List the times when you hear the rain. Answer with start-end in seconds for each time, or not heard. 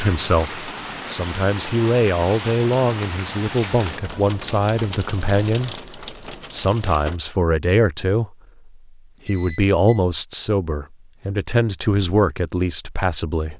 0.0-7.2.